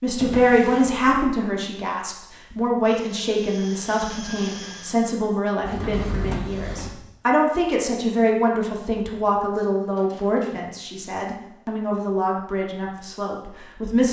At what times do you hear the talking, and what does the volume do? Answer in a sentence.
The talking can be heard from 0.0 to 14.0 s, getting quieter.